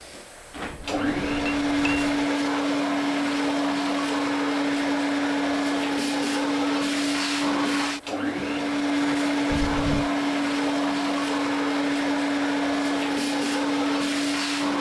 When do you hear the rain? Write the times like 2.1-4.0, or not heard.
not heard.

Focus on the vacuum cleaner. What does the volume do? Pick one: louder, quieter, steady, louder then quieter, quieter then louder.
steady.